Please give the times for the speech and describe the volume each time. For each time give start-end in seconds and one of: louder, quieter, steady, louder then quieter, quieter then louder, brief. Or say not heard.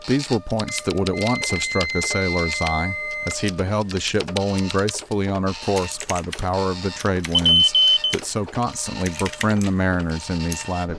0.1-10.9 steady.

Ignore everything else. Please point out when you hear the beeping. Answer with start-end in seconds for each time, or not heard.
0.7-3.4, 7.3-8.2.